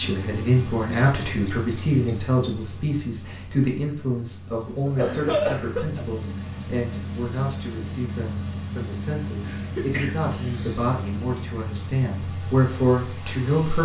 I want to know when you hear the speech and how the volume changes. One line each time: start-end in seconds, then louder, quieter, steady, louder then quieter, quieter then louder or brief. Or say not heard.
0.0-13.8 quieter then louder.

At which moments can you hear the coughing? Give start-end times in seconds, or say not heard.
0.9-2.1, 4.7-6.0, 9.4-10.8.